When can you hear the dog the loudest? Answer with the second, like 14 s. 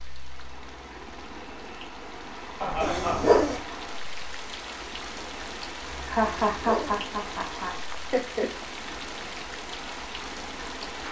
3 s.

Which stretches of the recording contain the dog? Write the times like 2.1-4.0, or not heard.
2.8-3.6, 6.2-7.0.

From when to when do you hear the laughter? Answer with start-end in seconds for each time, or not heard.
2.6-3.5, 6.0-8.5.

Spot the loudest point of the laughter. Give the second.
6 s.